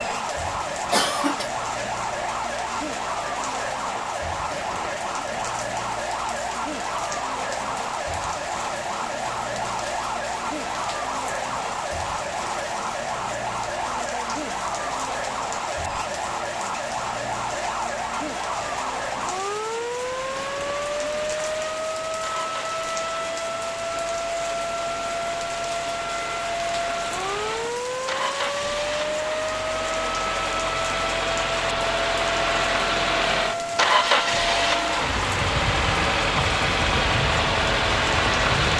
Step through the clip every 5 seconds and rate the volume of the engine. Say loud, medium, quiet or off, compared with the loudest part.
off, off, off, off, quiet, medium, loud, loud.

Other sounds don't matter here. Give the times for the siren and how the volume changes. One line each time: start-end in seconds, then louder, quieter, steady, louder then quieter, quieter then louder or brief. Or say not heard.
0.0-38.7 steady.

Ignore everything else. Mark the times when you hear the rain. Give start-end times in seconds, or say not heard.
0.0-38.7.